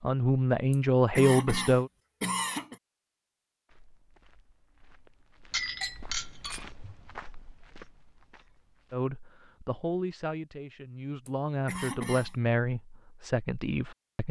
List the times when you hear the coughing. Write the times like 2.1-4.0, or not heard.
0.7-2.8, 11.2-12.3.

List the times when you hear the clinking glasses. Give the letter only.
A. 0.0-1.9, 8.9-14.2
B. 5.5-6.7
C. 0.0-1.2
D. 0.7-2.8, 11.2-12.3
B.